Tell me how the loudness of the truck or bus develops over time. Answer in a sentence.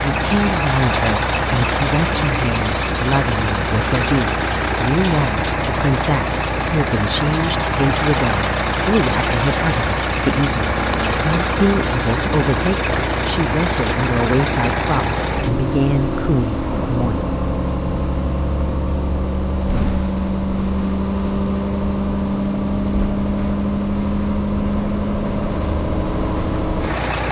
The volume of the truck or bus stays about the same.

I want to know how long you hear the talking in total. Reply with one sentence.
You can hear the talking for 17 seconds altogether.